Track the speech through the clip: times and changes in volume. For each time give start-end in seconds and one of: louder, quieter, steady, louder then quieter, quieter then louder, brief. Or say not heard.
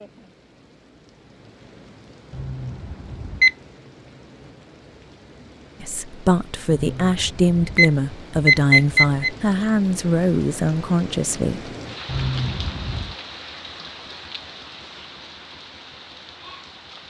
5.8-11.7 steady.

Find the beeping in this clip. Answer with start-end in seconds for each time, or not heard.
2.3-3.5, 6.7-9.3, 12.1-13.2.